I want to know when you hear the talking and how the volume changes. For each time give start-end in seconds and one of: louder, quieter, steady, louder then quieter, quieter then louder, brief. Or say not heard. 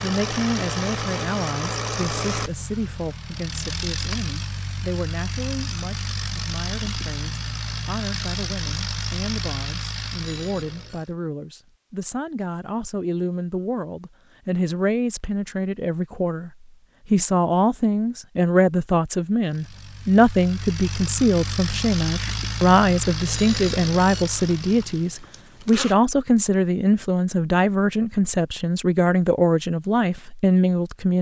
0.0-31.1 louder.